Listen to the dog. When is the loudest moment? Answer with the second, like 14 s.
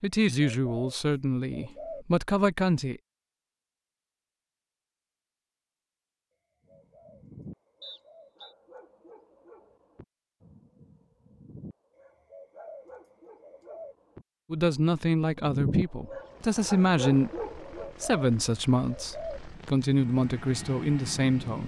16 s.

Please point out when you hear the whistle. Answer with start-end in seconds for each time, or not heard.
7.8-8.6.